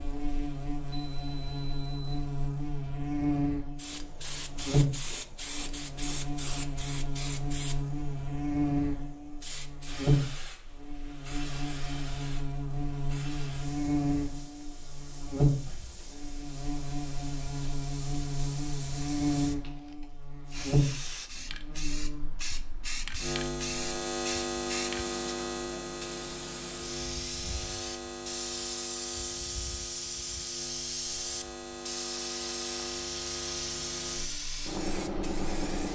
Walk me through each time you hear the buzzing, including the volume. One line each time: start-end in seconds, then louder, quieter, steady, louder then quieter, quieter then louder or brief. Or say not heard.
0.0-35.7 quieter.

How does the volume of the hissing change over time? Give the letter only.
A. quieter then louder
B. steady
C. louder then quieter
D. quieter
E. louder
A.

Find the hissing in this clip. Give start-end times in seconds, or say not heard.
3.8-35.8.